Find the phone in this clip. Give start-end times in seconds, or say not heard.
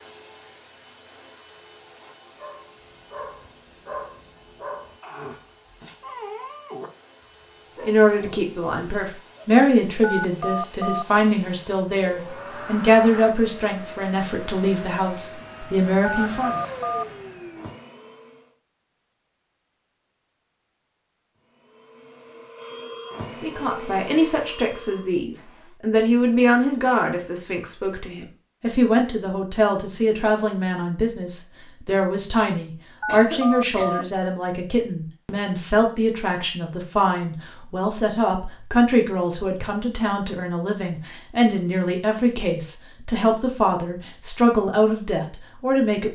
10.0-11.1, 16.0-17.1, 33.0-34.0.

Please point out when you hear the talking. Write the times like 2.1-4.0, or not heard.
7.8-16.6, 23.4-46.0.